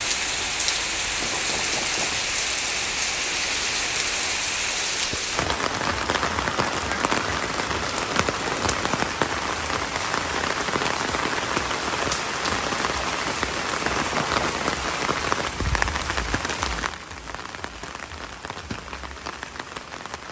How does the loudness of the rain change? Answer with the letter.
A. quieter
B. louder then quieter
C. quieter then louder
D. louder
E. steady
A.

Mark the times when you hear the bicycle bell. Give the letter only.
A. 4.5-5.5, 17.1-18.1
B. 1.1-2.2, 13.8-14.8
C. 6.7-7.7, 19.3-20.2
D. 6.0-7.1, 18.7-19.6
B.